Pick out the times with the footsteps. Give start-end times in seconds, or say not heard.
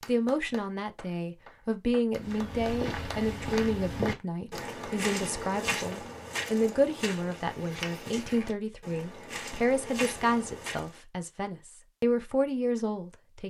2.1-10.9.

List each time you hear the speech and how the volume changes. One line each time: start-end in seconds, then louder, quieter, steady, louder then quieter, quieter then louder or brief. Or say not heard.
0.1-13.4 steady.